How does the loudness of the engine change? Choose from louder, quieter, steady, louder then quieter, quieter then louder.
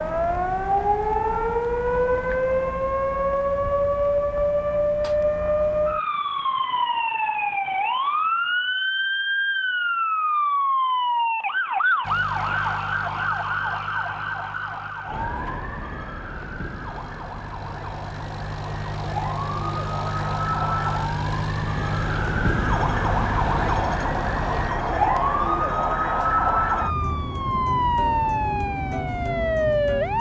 quieter then louder.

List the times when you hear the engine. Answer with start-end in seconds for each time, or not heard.
12.0-24.7.